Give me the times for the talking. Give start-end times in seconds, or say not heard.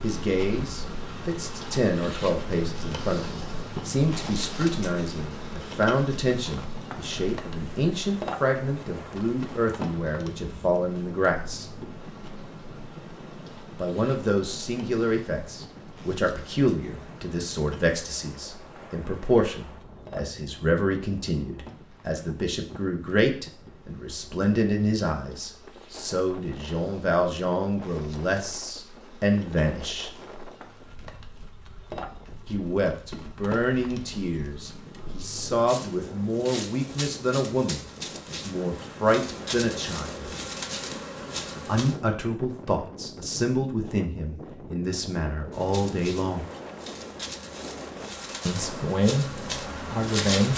0.0-11.7, 13.8-30.1, 32.5-40.3, 41.6-46.5, 48.5-50.5.